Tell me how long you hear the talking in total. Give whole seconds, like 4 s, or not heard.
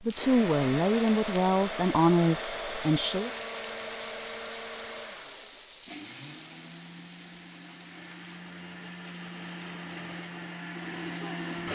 3 s.